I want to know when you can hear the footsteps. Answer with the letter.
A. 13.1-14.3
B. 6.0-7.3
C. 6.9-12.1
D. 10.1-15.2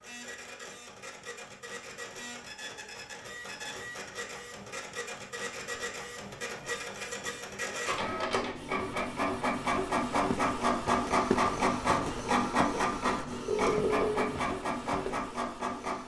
D.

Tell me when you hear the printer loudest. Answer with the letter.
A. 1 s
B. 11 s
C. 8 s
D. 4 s
B.